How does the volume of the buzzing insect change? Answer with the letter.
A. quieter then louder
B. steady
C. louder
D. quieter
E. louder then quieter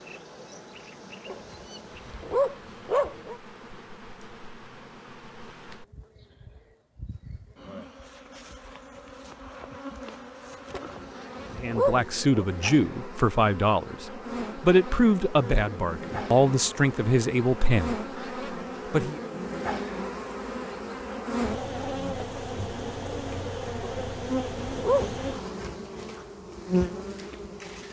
C.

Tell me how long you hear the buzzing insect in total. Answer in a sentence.
The buzzing insect can be heard for 28 seconds in total.